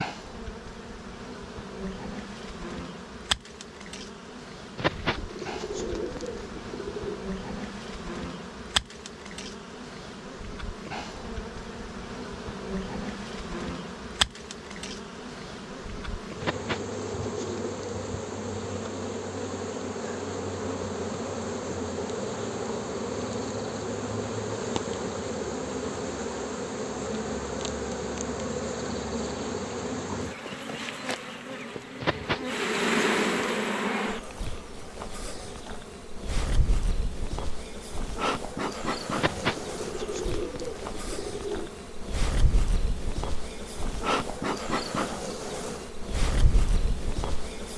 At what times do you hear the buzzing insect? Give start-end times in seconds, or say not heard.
0.0-47.7.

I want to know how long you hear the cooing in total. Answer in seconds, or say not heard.
8 s.